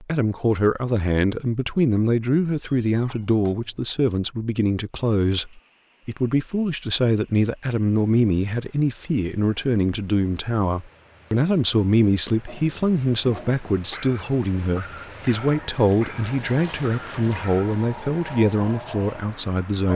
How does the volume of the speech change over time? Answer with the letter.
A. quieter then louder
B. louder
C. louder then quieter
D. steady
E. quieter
D.